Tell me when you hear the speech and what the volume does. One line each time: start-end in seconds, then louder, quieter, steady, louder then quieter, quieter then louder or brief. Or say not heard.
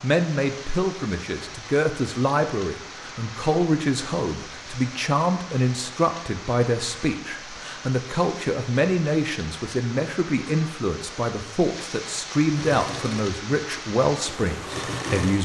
0.0-15.3 steady.